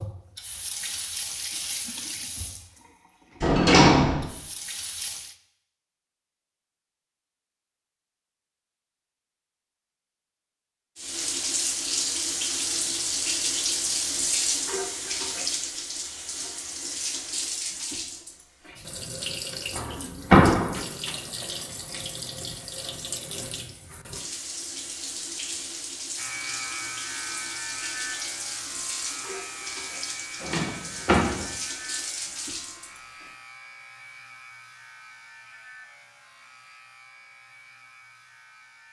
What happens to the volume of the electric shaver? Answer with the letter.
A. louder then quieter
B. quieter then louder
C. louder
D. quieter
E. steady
D.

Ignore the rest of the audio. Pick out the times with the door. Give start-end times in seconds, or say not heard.
3.4-4.2, 19.7-20.8, 30.4-31.4.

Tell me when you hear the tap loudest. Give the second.
14 s.